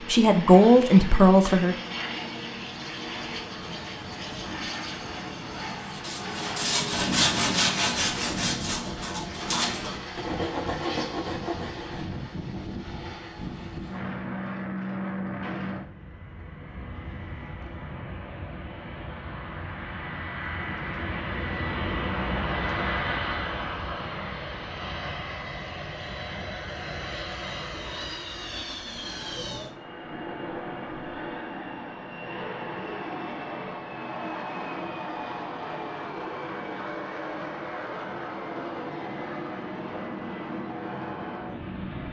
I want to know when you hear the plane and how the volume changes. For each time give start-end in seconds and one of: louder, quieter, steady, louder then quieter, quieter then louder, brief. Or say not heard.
0.0-42.0 steady.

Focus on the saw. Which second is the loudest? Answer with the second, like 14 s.
7 s.